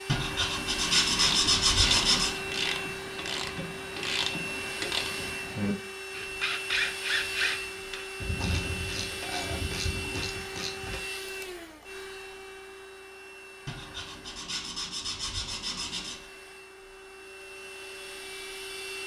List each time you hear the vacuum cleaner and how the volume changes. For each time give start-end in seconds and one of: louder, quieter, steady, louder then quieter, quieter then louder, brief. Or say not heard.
0.0-19.0 quieter.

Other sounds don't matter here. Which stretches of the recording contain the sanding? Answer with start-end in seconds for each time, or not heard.
0.1-2.4, 13.7-16.3.